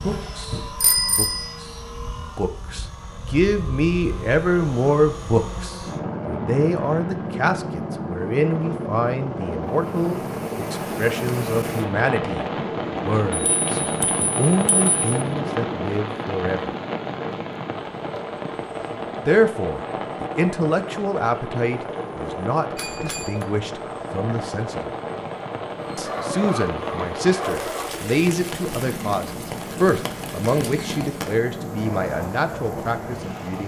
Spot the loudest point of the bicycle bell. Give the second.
1 s.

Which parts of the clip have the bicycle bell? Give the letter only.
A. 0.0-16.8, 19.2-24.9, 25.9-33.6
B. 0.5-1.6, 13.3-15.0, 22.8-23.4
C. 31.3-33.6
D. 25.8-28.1
B.